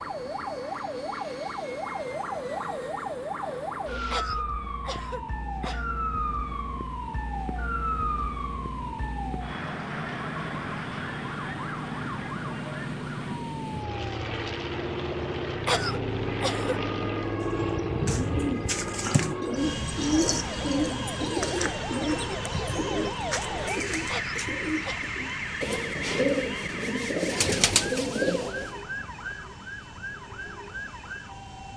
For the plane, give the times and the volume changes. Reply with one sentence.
You can hear the plane from 0.0 to 31.7 s, getting louder then quieter.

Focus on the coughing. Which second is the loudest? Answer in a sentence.
The loudest moment of the coughing is at 16 seconds.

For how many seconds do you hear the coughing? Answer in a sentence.
The coughing can be heard for 4 seconds in total.